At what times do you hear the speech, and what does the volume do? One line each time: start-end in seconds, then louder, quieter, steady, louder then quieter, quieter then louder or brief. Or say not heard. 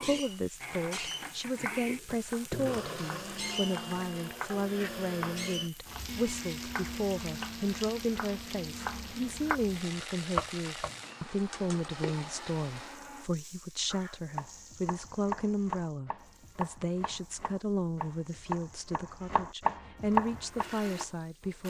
0.0-21.6 steady.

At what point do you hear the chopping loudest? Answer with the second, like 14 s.
20 s.